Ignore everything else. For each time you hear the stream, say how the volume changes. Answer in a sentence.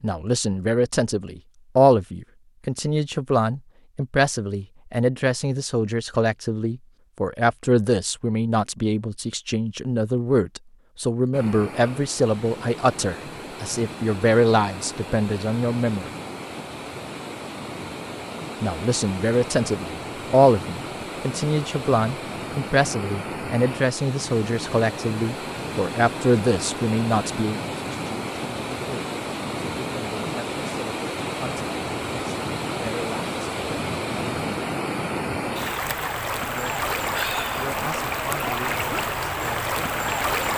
The stream can be heard from 11.3 to 40.5 s, getting louder.